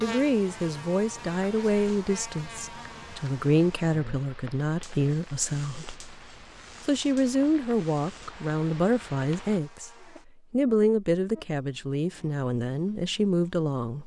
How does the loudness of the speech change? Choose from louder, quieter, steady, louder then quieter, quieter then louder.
steady.